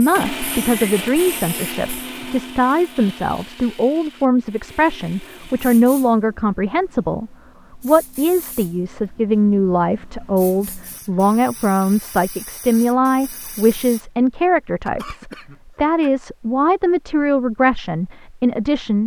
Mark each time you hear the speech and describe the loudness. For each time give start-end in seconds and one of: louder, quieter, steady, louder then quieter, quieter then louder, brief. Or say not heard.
0.0-19.0 steady.